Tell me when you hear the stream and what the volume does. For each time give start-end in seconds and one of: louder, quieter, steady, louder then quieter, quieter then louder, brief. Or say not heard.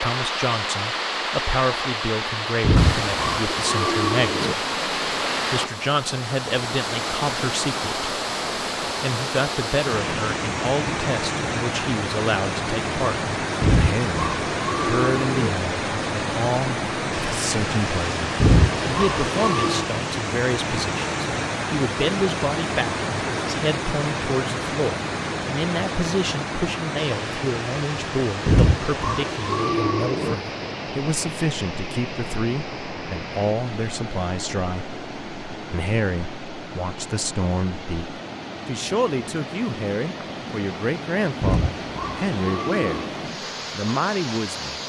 0.0-44.8 quieter.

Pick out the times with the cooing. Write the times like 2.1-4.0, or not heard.
2.6-4.5, 13.6-15.5, 18.4-19.9, 28.4-30.4, 41.4-43.1.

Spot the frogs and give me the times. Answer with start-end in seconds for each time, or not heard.
not heard.